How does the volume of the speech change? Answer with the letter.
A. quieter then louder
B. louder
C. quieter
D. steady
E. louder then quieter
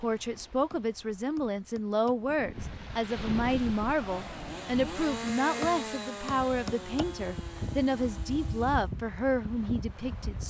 D.